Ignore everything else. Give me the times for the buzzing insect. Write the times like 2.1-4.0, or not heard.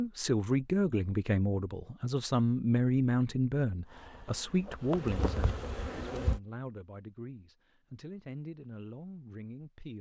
3.9-6.4.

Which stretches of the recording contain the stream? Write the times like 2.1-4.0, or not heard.
not heard.